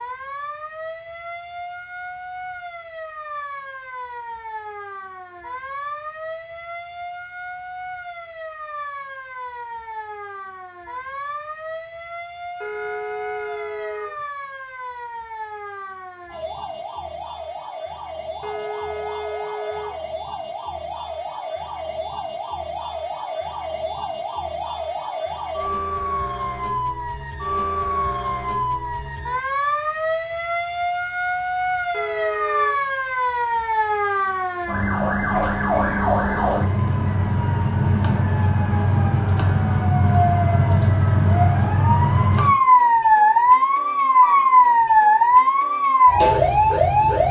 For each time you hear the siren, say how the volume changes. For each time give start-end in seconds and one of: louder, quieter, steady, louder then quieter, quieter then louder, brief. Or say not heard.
0.0-47.2 louder.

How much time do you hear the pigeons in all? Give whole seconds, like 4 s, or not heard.
not heard.